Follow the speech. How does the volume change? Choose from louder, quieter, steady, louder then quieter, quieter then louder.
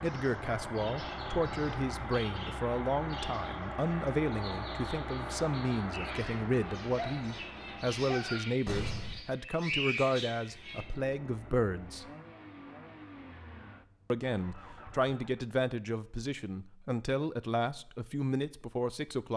steady.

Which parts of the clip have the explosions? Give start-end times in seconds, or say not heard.
8.7-9.2.